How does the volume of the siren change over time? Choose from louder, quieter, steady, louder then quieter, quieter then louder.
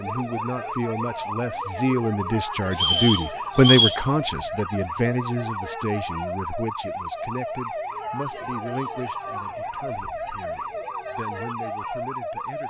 steady.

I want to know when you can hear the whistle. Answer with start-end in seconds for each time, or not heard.
2.7-4.0.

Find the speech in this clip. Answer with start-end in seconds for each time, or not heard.
0.0-12.6.